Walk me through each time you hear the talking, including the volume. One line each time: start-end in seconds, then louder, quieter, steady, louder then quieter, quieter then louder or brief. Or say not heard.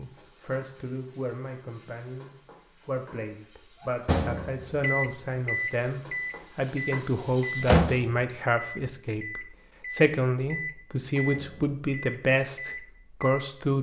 0.0-13.7 louder.